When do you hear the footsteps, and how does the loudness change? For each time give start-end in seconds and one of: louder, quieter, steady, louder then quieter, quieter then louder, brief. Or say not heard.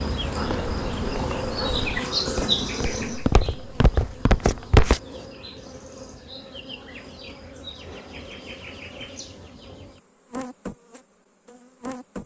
0.0-5.0 louder.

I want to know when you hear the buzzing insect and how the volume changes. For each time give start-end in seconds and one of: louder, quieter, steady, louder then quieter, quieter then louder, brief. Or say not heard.
0.0-12.2 quieter.